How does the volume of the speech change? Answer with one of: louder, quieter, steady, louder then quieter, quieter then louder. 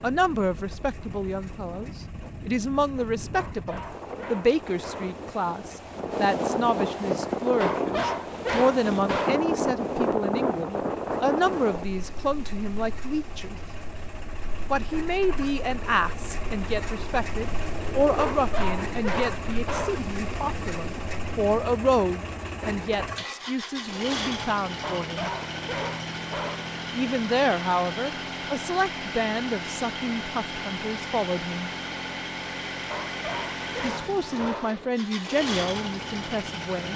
steady.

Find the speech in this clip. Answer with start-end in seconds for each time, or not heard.
0.0-13.6, 14.7-25.3, 26.9-31.7, 33.8-36.9.